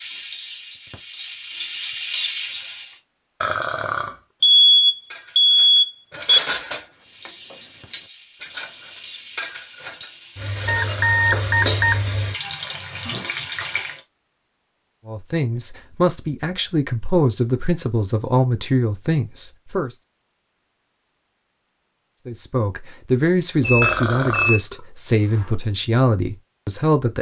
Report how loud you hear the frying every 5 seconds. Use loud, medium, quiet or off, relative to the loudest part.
loud, quiet, loud, off, off, off.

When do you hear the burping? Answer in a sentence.
You can hear the burping from 3.4 to 4.2 s, from 10.8 to 11.4 s and from 23.8 to 25.6 s.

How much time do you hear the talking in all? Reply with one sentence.
You can hear the talking for 10 seconds altogether.